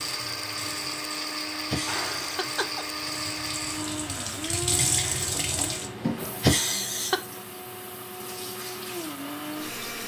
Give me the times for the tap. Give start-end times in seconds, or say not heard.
0.0-10.0.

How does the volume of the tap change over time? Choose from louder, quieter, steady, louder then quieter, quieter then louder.
louder then quieter.